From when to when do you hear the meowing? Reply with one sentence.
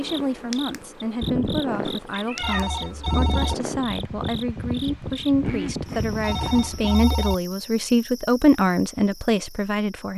The meowing can be heard from 1.9 to 2.7 s.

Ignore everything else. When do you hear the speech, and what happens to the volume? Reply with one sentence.
You can hear the speech from 0.0 to 10.1 s, getting louder.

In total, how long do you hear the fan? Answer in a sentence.
You can hear the fan for 7 seconds altogether.